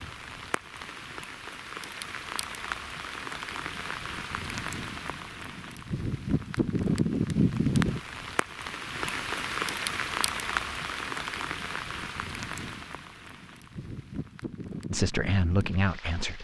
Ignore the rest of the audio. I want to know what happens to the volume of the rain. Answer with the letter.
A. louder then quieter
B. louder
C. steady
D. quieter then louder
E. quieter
A.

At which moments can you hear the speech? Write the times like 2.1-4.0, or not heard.
14.8-16.3.